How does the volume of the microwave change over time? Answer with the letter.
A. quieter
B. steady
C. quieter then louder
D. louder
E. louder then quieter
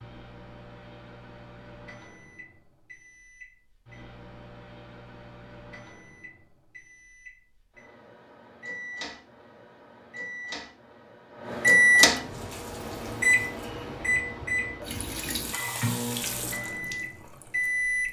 E.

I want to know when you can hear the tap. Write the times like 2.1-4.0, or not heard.
12.2-18.0.